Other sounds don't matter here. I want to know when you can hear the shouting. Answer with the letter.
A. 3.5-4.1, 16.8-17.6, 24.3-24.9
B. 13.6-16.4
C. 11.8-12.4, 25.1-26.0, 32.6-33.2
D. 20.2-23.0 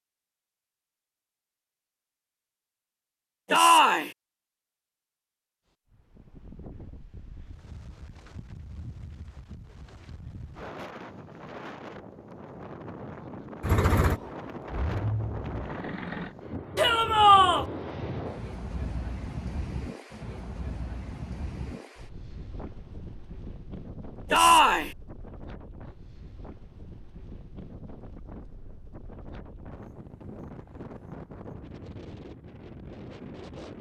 A.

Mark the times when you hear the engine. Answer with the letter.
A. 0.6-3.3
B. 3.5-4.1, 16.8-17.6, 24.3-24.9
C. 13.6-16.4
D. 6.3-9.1
C.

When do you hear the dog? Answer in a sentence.
You can't hear the dog here.